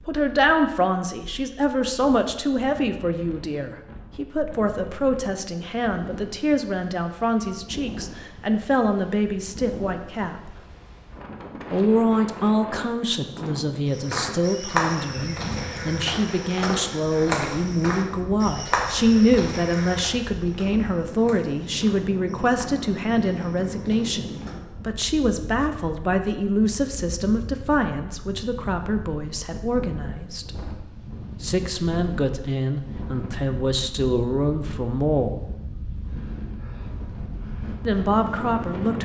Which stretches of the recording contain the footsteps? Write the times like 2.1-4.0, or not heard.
13.9-24.6.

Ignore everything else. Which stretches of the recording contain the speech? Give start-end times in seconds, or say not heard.
0.1-10.6, 11.7-30.6, 31.4-35.4, 37.9-39.0.